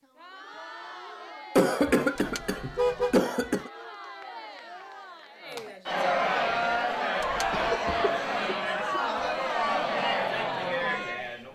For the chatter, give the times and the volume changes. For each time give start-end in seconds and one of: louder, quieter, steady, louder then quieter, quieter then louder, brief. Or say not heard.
0.0-11.5 louder.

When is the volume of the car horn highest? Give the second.
3 s.